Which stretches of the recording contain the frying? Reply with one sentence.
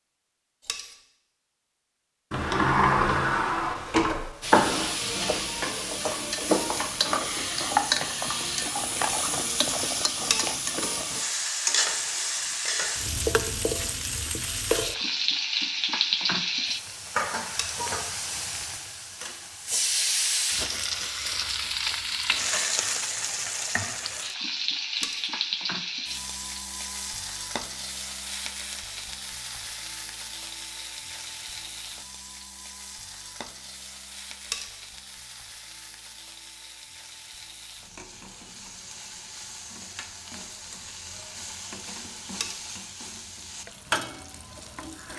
The frying can be heard from 4.4 to 45.1 s.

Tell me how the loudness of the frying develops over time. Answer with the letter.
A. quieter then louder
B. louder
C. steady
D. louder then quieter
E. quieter
E.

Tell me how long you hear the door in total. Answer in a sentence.
The door can be heard for 3 seconds in total.